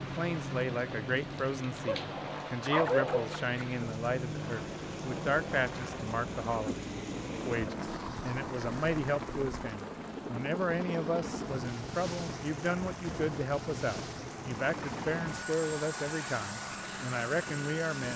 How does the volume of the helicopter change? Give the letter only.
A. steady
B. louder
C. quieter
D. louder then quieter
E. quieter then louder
A.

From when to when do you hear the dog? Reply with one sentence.
You can hear the dog from 1.9 to 3.6 s.